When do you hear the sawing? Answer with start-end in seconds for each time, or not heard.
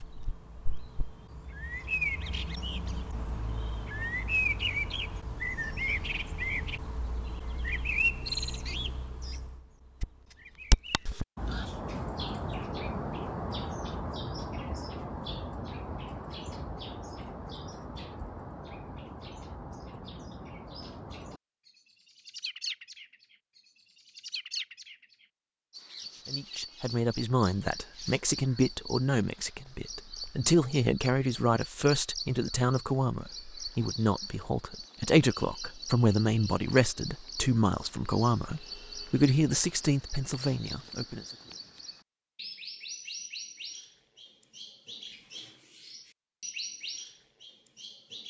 not heard.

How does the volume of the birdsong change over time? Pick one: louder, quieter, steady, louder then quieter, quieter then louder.
quieter.